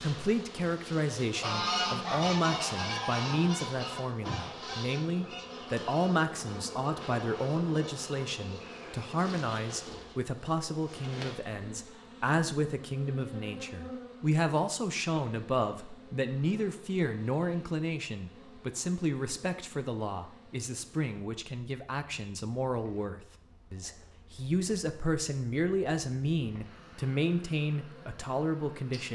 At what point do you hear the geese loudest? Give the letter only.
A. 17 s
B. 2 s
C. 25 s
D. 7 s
B.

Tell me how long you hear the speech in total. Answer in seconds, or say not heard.
29 s.